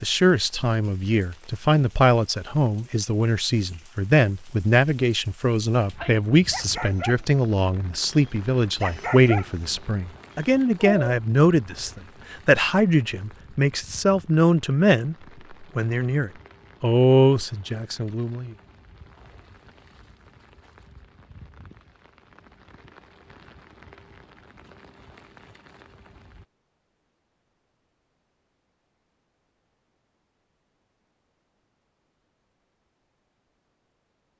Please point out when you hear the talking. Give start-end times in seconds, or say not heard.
0.0-18.6.